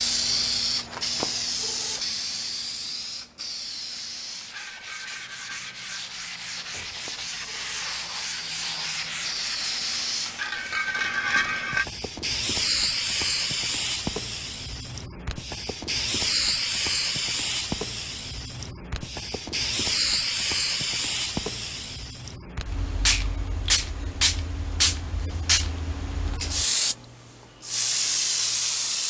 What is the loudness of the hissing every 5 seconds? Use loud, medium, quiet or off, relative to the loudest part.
loud, medium, loud, loud, loud, loud.